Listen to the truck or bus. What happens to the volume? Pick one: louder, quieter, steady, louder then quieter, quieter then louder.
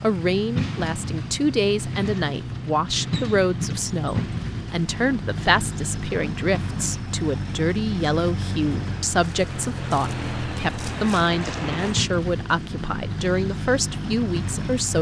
steady.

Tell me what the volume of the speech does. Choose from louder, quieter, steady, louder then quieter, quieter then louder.
steady.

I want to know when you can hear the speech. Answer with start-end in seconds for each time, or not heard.
0.0-14.9.